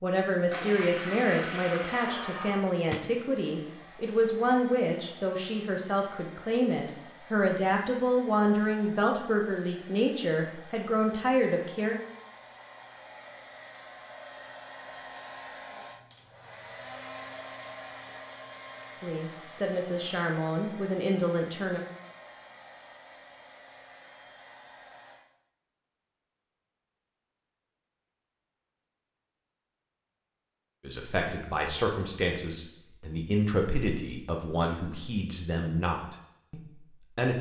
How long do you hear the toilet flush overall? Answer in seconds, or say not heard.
2 s.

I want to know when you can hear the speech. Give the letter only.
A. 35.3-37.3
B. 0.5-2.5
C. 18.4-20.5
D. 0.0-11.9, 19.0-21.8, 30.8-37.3
D.